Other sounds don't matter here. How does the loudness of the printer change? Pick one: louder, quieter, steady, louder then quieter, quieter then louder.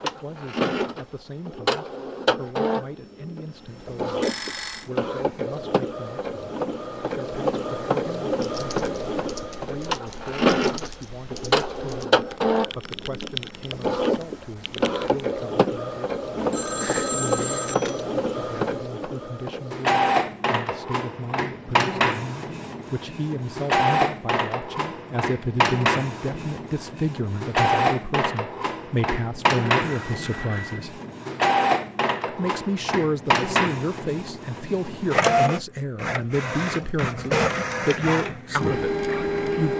steady.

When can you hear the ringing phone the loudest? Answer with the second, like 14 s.
17 s.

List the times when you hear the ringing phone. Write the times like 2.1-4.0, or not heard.
4.2-4.9, 16.4-18.0, 29.8-30.9.